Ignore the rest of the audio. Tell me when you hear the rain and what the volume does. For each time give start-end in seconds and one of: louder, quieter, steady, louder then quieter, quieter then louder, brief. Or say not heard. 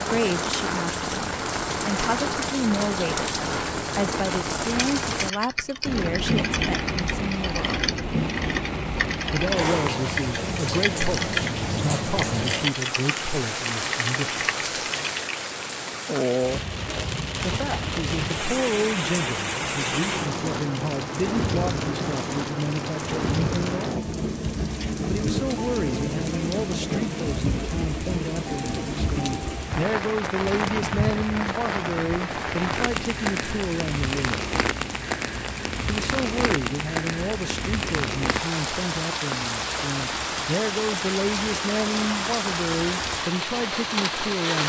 0.0-44.6 steady.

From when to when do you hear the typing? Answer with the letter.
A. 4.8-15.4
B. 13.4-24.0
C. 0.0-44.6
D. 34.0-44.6
A.